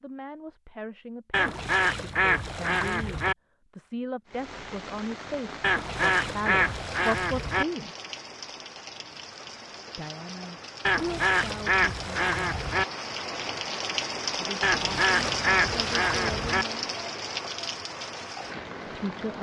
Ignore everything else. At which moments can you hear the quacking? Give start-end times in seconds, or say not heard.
1.3-3.4, 5.6-7.7, 10.8-12.8, 14.6-16.6.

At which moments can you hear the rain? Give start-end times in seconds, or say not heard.
4.2-19.3.